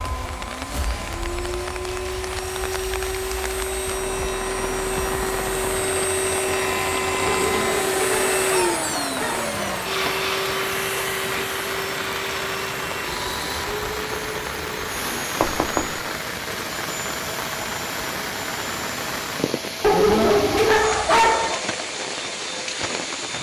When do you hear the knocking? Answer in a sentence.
You can hear the knocking from 15.4 to 16.0 s.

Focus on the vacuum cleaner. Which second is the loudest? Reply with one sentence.
The loudest moment of the vacuum cleaner is at 8 seconds.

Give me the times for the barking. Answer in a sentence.
You can hear the barking from 7.2 to 9.8 s and from 19.8 to 21.6 s.